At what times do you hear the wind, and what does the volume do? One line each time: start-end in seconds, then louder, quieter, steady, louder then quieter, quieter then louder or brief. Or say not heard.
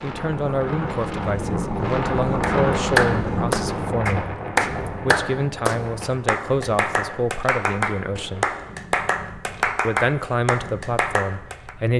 0.0-11.9 quieter.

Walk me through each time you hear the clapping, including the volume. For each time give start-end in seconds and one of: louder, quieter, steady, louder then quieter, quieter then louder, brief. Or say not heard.
2.4-11.8 quieter.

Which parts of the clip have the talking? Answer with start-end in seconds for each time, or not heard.
0.0-8.4, 9.8-11.9.